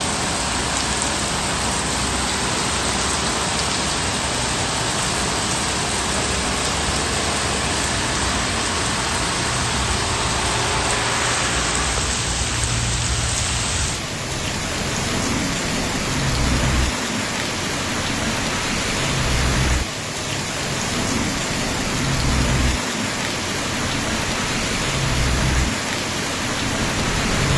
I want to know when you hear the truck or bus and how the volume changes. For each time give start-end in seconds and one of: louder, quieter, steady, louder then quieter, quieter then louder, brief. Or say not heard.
0.0-27.5 steady.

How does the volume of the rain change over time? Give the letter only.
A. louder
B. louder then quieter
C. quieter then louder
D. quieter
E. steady
E.